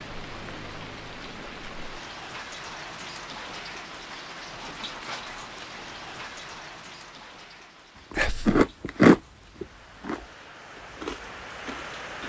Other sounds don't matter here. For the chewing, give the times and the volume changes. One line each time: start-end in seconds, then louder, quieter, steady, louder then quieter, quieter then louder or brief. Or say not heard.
8.1-12.2 quieter.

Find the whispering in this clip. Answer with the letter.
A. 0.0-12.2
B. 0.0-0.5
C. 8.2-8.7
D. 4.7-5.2
C.